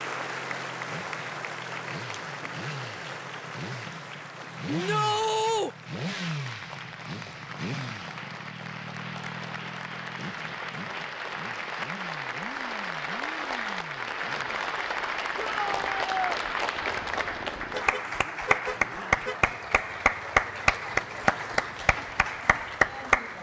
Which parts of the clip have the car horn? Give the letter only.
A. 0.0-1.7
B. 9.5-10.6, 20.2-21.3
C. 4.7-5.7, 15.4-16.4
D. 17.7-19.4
D.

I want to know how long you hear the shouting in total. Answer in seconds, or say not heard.
2 s.